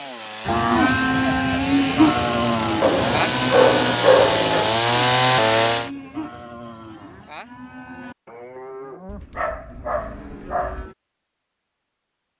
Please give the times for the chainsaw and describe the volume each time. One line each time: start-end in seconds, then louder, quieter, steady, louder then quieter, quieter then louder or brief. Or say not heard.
0.0-5.9 louder.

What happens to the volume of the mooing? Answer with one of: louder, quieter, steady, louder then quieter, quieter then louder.
quieter.